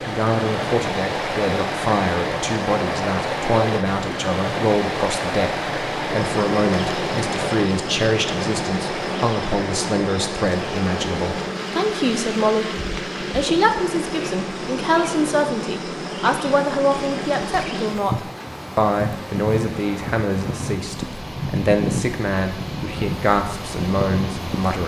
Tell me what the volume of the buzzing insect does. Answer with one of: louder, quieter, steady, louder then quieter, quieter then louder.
steady.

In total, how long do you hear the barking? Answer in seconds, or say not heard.
not heard.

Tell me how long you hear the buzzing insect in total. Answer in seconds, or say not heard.
19 s.